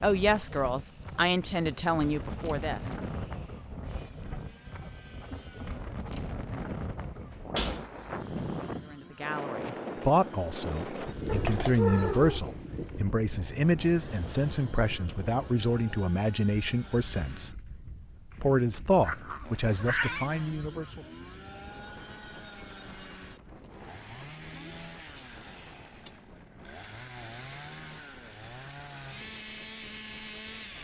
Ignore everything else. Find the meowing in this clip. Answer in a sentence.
The meowing can be heard from 11.2 to 12.7 s and from 19.0 to 20.3 s.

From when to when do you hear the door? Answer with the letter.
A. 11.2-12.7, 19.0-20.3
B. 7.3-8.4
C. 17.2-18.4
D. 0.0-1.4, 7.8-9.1
B.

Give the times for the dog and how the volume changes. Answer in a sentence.
You can't hear the dog here.